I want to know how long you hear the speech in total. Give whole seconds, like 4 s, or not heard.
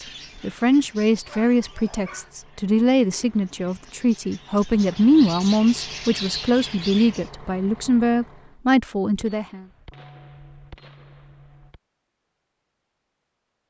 9 s.